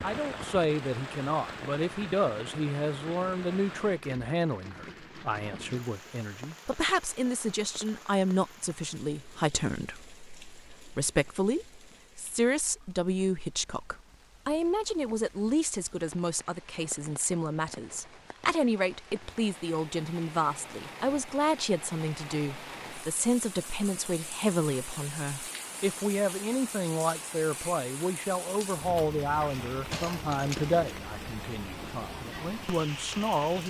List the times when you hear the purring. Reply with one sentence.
You can't hear the purring here.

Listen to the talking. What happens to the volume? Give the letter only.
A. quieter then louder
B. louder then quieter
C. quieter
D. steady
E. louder
D.